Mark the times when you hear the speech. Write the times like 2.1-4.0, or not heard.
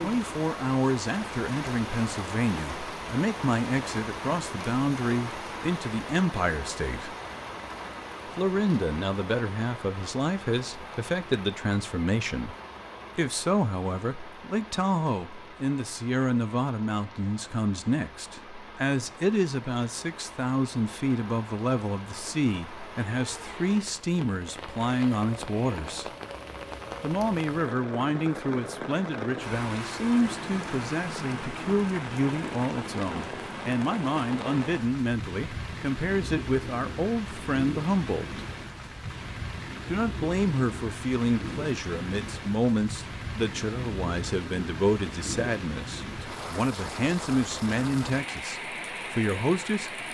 0.0-7.2, 8.3-12.6, 13.2-26.1, 27.0-38.5, 39.9-50.0.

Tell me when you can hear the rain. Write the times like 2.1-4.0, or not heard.
0.0-50.0.